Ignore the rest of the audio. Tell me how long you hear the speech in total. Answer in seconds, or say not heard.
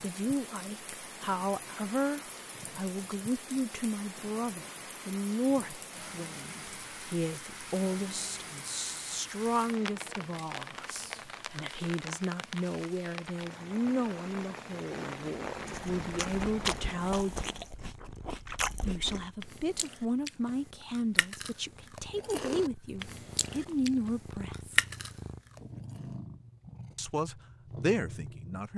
25 s.